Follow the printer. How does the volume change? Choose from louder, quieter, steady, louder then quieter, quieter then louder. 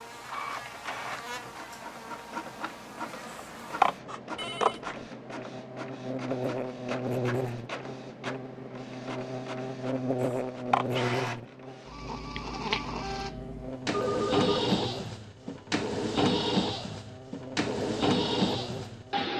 louder.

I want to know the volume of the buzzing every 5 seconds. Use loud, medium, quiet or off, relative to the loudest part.
medium, loud, loud, medium.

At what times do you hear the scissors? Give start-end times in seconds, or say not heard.
3.2-5.0, 10.2-11.1.